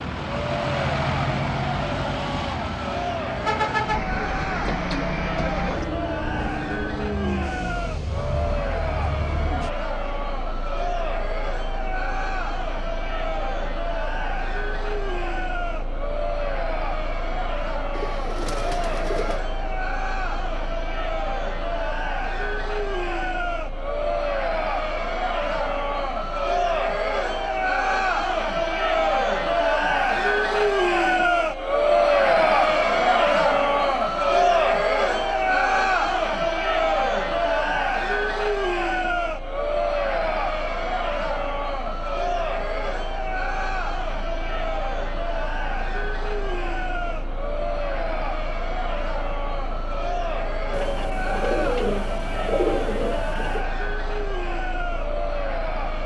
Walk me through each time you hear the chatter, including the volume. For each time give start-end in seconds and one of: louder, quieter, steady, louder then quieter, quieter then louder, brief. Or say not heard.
0.2-56.0 louder then quieter.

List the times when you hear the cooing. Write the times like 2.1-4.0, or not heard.
17.9-19.4, 50.7-53.6.